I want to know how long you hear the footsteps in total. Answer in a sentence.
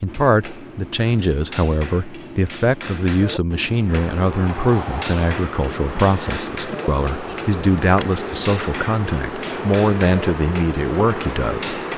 You can't hear the footsteps here.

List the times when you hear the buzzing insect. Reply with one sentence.
You can hear the buzzing insect from 3.9 to 11.9 s.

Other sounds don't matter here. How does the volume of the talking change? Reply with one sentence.
The loudness of the talking stays about the same.